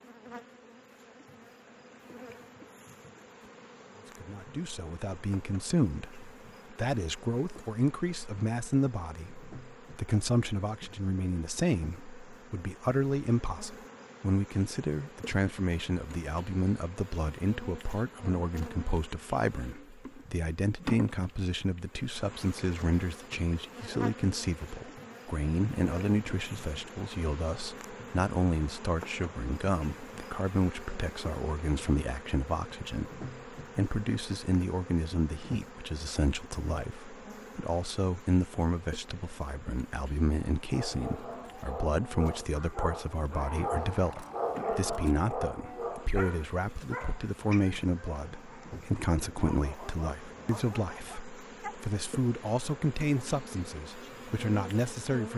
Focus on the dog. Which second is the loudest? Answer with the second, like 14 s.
45 s.